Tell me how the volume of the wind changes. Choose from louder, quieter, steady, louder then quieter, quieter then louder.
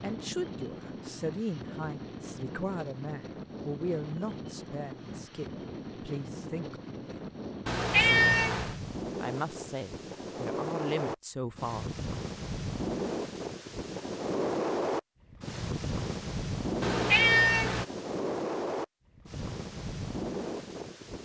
louder.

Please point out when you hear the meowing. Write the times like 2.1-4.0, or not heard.
7.7-8.8, 16.8-17.9.